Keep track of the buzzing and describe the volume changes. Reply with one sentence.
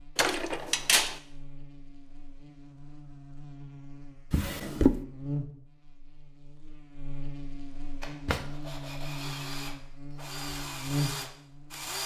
The volume of the buzzing goes up.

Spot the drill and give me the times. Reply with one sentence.
The drill can be heard from 8.0 to 12.0 s.